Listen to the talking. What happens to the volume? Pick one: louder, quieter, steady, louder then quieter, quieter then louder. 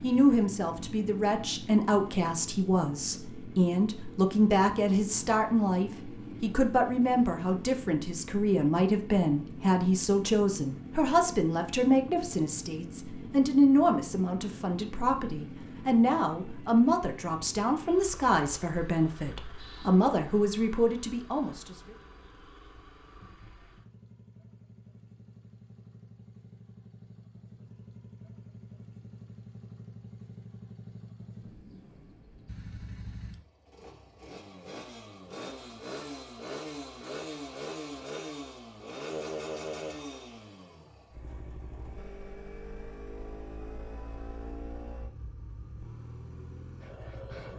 steady.